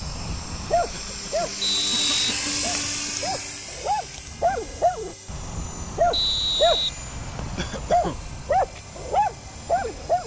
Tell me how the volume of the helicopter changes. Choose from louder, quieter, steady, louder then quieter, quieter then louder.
quieter.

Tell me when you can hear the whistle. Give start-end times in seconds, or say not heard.
1.6-2.4, 6.1-7.6.